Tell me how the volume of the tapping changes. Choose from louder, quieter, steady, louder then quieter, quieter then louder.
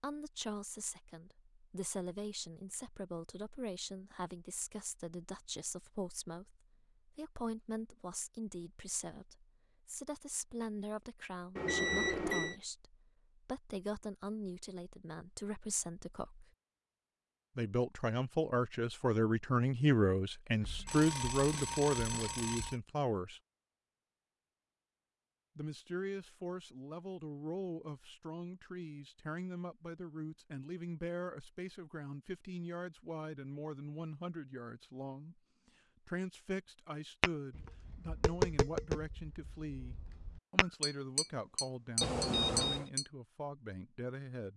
quieter then louder.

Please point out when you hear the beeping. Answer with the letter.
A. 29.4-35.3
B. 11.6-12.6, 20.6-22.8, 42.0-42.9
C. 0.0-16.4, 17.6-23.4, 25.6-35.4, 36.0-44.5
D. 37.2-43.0
B.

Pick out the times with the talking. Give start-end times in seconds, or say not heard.
0.0-16.4, 17.6-23.4, 25.6-35.4, 36.0-44.5.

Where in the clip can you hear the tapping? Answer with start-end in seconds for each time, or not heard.
37.2-43.0.